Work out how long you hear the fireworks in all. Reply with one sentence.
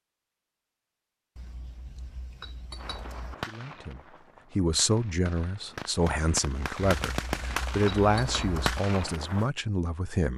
The fireworks can be heard for 7 seconds in total.